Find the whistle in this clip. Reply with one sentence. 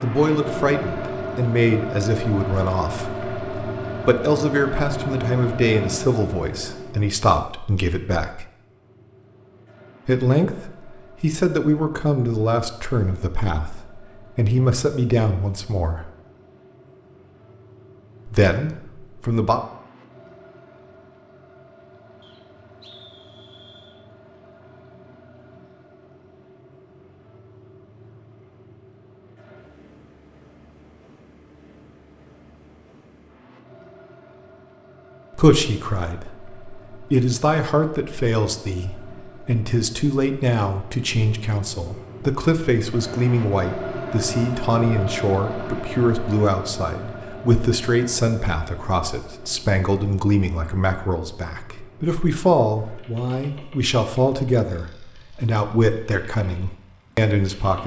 The whistle can be heard from 22.2 to 23.9 s.